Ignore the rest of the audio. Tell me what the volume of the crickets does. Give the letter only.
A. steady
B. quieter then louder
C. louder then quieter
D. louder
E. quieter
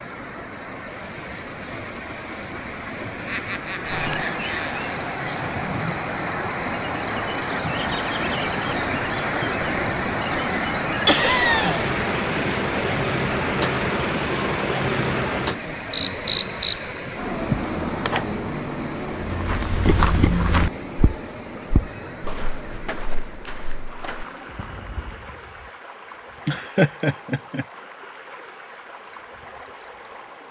E.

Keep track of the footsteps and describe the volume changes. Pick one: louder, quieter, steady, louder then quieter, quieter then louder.
quieter.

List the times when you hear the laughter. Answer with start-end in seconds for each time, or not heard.
3.2-4.8, 11.1-11.8, 26.4-27.6.